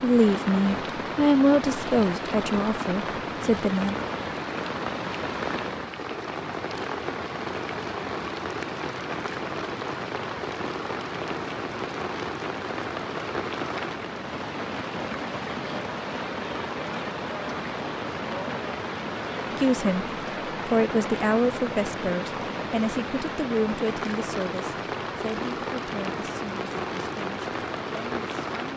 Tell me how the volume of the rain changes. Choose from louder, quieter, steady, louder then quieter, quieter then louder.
steady.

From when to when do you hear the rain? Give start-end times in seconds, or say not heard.
0.0-28.7.